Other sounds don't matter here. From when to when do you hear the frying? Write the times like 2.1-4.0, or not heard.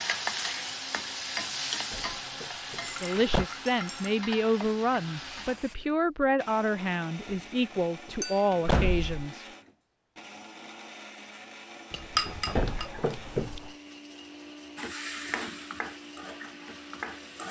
0.0-5.8, 14.8-17.4.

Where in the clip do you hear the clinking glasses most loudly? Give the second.
12 s.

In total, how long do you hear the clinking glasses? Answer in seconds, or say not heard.
3 s.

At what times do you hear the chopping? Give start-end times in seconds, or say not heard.
not heard.